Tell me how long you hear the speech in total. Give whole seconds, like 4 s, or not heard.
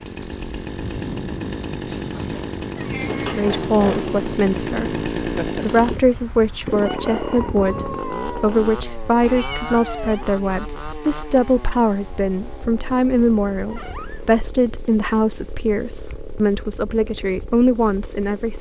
15 s.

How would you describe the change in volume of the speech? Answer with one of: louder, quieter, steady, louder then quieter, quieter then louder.
steady.